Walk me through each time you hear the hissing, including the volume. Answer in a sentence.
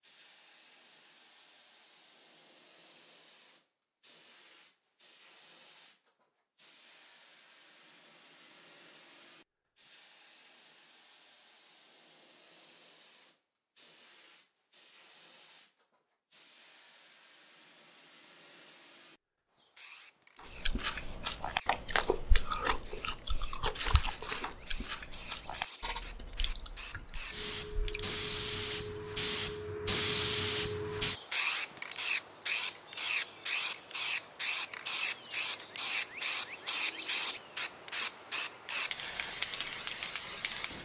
The hissing can be heard from 0.0 to 40.7 s, getting louder.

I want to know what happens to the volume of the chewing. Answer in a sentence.
The loudness of the chewing goes down.